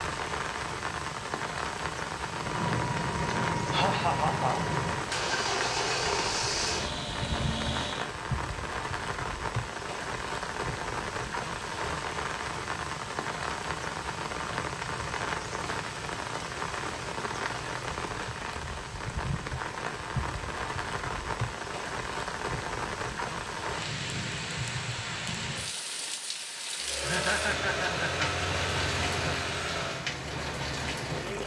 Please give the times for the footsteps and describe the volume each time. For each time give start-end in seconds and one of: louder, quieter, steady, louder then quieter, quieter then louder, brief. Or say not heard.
not heard.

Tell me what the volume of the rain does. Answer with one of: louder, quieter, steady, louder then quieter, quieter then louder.
steady.